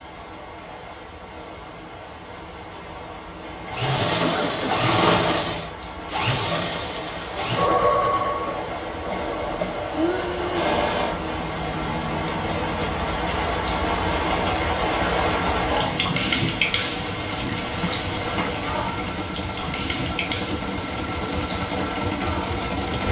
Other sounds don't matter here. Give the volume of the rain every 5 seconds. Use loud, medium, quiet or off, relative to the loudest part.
quiet, medium, loud, loud, medium.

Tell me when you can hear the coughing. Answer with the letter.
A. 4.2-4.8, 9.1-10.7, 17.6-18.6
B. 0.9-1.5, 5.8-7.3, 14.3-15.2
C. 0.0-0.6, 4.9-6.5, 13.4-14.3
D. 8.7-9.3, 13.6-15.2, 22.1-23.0
A.